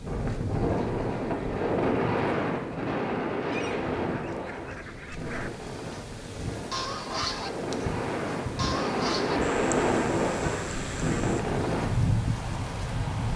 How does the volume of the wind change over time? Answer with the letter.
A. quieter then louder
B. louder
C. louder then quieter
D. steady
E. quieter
A.